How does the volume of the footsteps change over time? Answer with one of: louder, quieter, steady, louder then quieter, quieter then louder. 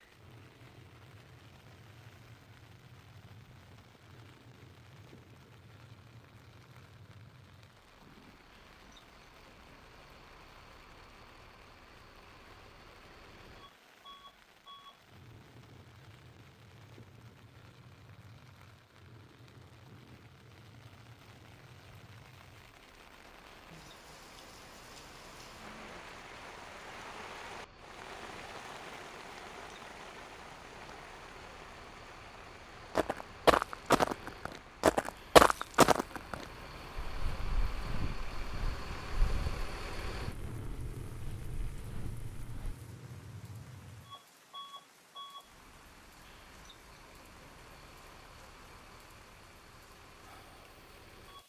quieter.